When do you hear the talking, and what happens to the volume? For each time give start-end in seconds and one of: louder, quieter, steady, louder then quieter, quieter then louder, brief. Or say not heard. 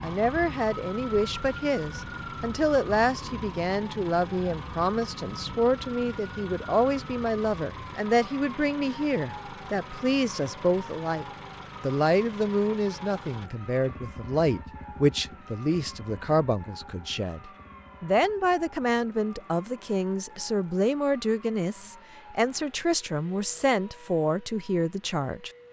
0.0-25.5 steady.